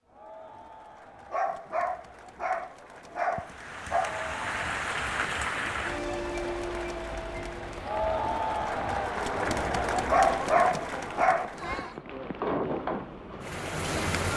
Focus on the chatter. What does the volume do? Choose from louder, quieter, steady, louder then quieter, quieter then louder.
louder.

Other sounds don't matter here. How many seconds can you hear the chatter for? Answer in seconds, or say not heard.
12 s.